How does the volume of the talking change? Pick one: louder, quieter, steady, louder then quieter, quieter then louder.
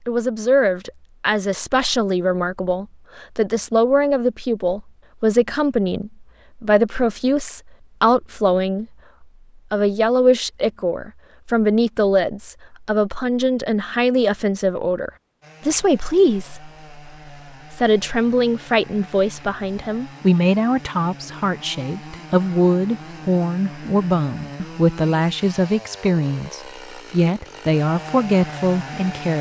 steady.